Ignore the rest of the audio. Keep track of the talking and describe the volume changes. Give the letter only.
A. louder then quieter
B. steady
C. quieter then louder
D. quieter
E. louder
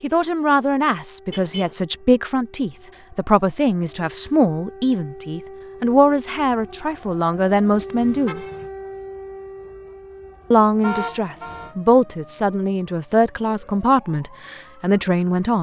B.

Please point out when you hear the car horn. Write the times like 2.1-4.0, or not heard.
1.3-1.8, 8.0-8.7, 10.8-11.8.